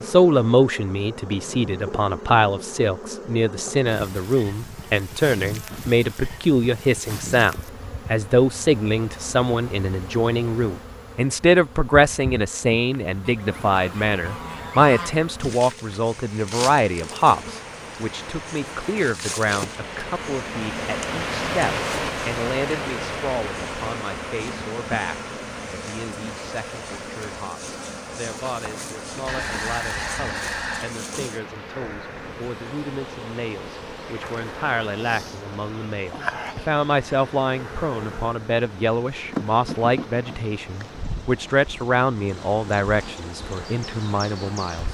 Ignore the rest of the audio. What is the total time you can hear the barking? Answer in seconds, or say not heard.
not heard.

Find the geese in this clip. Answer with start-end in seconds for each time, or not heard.
13.2-15.2, 29.2-30.9.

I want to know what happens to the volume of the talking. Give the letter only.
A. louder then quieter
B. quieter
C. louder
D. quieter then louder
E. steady
D.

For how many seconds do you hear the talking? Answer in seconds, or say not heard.
45 s.